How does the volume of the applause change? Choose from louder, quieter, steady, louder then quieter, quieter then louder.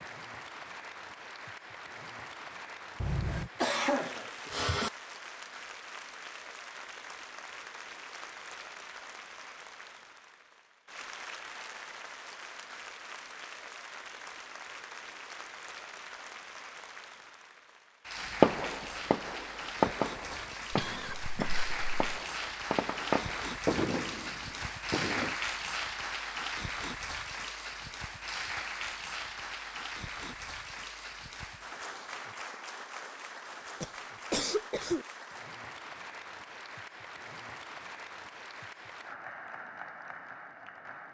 louder then quieter.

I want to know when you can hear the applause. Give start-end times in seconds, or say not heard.
0.0-41.0.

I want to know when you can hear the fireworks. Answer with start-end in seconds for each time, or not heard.
18.2-25.4.